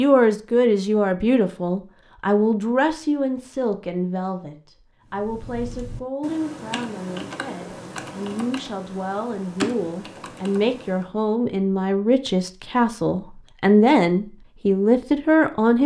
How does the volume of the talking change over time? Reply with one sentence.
The loudness of the talking goes down, then up.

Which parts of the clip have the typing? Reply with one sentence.
The typing can be heard from 5.0 to 11.1 s.